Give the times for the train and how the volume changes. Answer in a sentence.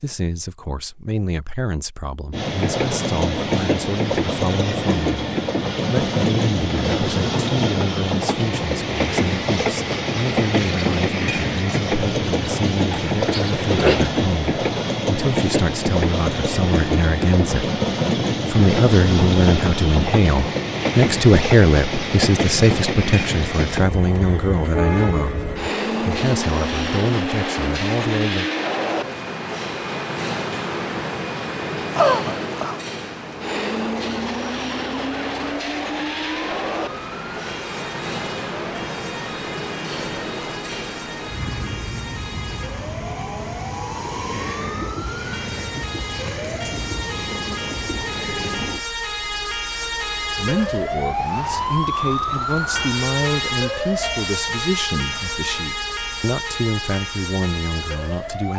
You can hear the train from 2.3 to 48.9 s, getting quieter.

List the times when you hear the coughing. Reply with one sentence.
The coughing can be heard from 12.9 to 14.1 s and from 31.9 to 32.8 s.